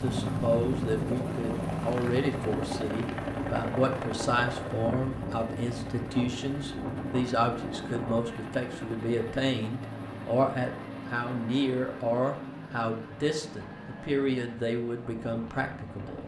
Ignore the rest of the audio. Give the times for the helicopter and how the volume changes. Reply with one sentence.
You can hear the helicopter from 0.0 to 16.2 s, getting quieter.